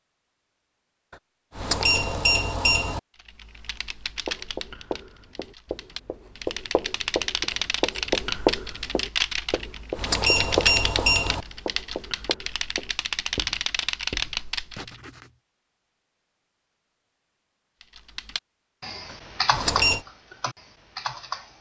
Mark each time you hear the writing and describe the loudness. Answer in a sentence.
You can hear the writing from 4.2 to 15.3 s, getting louder then quieter.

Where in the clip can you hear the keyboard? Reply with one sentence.
You can hear the keyboard from 3.2 to 15.0 s and from 17.8 to 21.5 s.